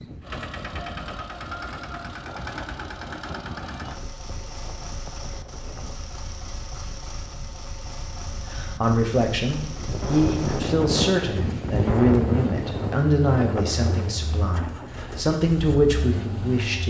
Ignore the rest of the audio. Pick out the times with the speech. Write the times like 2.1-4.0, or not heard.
8.4-16.8.